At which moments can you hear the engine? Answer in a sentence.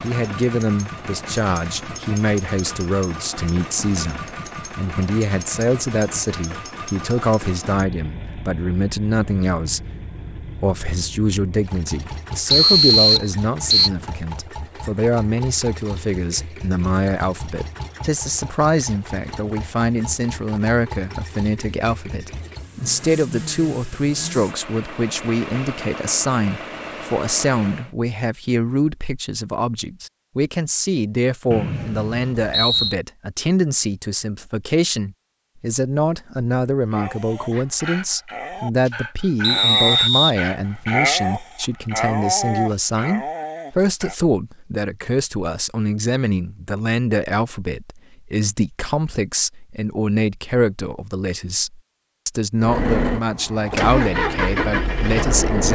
The engine can be heard from 0.0 to 27.9 s and from 52.6 to 55.7 s.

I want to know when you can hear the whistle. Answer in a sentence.
The whistle can be heard from 12.5 to 13.9 s, from 31.5 to 33.0 s and from 39.4 to 40.8 s.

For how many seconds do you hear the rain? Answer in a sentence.
The rain can't be heard in this clip.